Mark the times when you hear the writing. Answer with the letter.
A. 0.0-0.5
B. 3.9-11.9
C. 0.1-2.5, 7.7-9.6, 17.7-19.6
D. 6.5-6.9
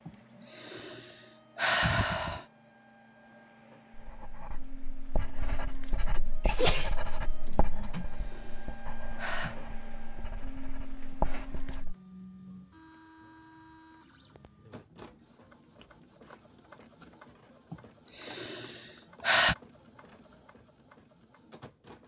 B.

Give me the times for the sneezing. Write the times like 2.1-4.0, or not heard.
6.5-6.9.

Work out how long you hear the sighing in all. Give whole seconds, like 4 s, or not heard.
6 s.